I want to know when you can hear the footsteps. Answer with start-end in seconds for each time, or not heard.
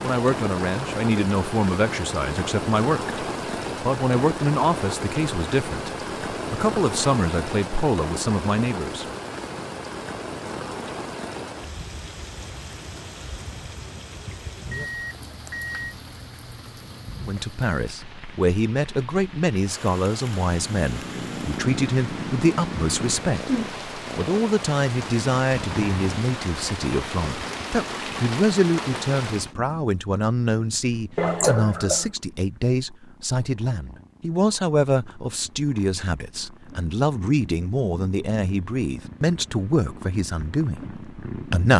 not heard.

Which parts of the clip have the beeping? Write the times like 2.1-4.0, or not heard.
14.7-15.9, 31.1-32.0.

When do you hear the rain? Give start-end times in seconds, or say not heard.
0.0-29.6.